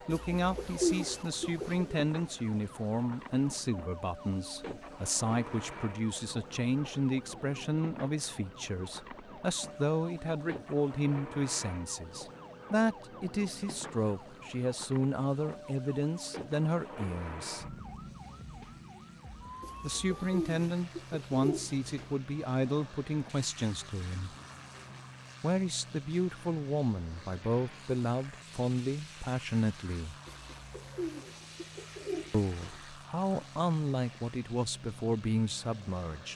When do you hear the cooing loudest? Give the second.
1 s.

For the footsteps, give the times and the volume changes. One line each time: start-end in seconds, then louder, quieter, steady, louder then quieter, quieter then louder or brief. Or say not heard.
not heard.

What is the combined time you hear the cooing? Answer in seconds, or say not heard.
7 s.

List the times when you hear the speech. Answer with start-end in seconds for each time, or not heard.
0.1-17.7, 19.8-24.4, 25.4-30.1, 32.3-36.3.